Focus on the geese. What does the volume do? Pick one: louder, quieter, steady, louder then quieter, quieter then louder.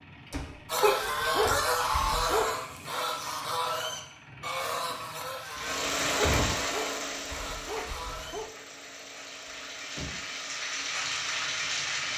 quieter.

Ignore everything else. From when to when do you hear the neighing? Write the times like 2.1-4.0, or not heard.
not heard.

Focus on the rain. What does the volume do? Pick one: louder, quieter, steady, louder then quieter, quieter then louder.
quieter then louder.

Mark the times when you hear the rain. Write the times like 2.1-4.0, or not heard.
5.4-12.1.